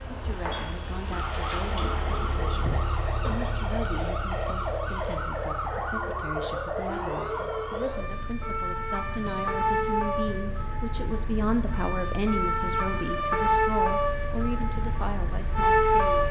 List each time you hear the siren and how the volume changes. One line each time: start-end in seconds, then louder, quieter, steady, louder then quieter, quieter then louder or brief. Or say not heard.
0.0-16.2 louder.